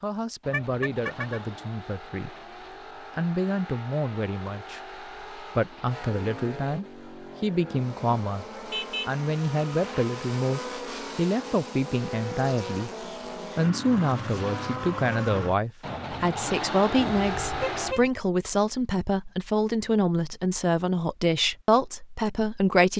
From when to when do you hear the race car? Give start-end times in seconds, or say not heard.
0.0-17.9.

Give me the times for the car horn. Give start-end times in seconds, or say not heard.
0.5-1.4, 8.7-10.1, 16.9-18.1.